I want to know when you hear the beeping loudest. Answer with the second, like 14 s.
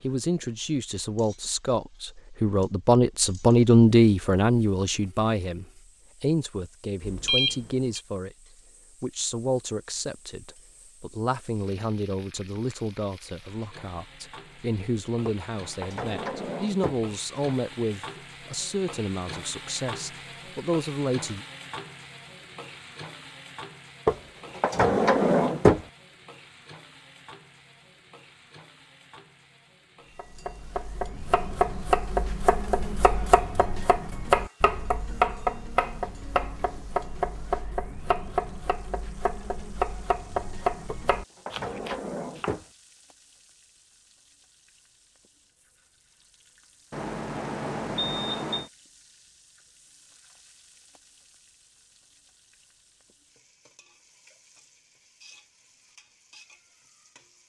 7 s.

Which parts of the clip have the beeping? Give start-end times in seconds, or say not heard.
7.0-8.0, 46.9-48.7.